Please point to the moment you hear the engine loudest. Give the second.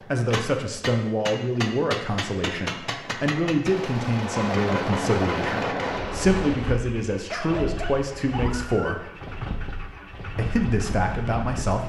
5 s.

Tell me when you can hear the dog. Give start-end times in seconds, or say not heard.
7.2-8.9.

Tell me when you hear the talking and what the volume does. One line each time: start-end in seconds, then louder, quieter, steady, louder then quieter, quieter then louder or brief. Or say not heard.
0.0-9.1 steady
10.3-11.8 brief.